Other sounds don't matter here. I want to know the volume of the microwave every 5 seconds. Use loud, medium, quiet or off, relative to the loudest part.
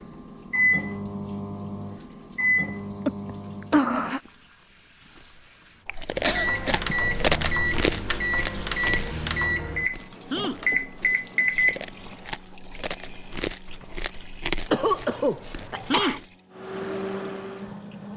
loud, loud, loud, medium.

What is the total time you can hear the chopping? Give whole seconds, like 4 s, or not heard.
not heard.